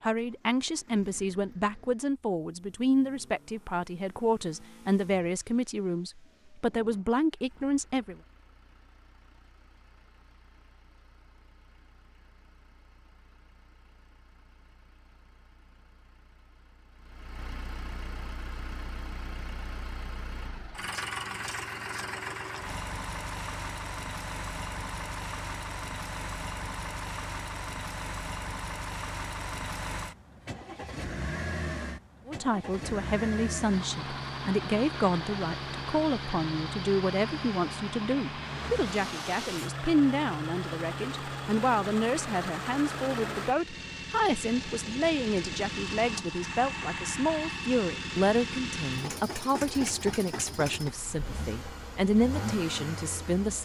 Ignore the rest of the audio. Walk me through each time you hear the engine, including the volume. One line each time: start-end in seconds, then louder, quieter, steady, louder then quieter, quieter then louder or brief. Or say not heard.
0.0-53.5 louder.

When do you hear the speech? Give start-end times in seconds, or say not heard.
0.0-8.2, 32.2-53.5.